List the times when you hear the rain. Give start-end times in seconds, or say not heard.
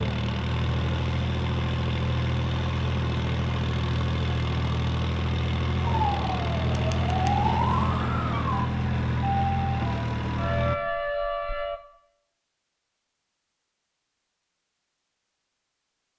not heard.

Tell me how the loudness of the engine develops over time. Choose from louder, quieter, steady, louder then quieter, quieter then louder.
steady.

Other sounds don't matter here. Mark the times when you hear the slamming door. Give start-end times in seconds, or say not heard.
not heard.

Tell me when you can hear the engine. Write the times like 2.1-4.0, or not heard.
0.0-10.8.